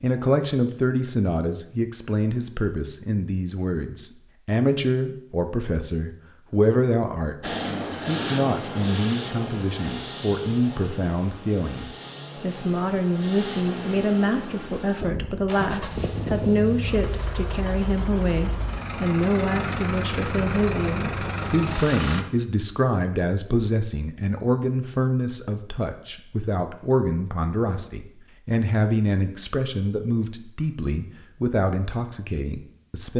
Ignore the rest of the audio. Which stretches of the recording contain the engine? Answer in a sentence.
The engine can be heard from 7.4 to 22.2 s.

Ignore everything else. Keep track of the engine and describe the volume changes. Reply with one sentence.
The volume of the engine goes down, then up.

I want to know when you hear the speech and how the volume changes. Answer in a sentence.
You can hear the speech from 0.0 to 33.1 s, at a steady volume.